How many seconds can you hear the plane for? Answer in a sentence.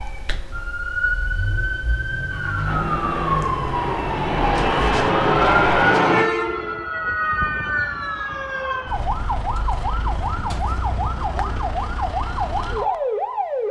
The plane can be heard for 4 seconds in total.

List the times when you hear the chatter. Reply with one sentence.
You can't hear the chatter here.